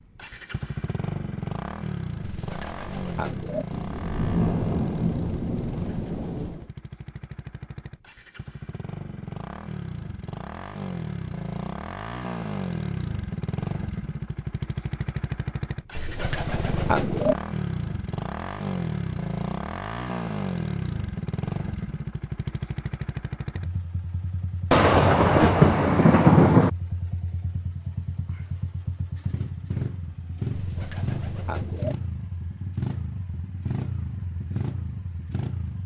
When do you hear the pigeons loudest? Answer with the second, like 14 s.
17 s.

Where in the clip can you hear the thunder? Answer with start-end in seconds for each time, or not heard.
3.7-6.7, 24.7-26.7.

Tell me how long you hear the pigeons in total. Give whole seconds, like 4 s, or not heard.
4 s.